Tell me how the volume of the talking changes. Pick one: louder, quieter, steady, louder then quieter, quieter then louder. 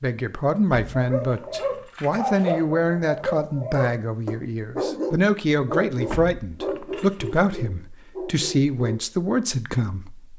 steady.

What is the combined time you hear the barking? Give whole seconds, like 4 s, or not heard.
8 s.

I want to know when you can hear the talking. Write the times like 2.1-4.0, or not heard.
0.0-10.3.